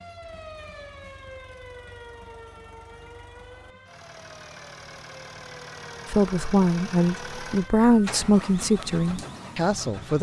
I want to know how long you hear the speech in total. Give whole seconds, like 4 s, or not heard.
4 s.